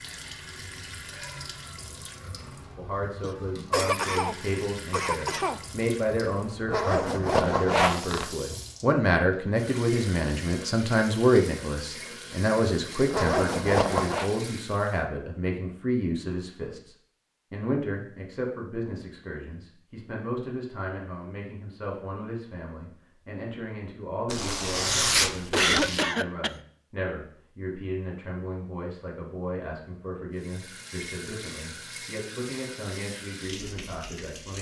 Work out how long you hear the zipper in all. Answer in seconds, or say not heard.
5 s.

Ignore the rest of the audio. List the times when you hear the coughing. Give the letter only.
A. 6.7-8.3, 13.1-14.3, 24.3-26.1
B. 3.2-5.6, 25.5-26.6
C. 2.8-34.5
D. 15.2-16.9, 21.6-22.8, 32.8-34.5
B.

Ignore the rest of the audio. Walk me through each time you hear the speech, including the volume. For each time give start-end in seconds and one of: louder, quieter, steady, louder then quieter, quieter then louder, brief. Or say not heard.
2.8-34.5 quieter.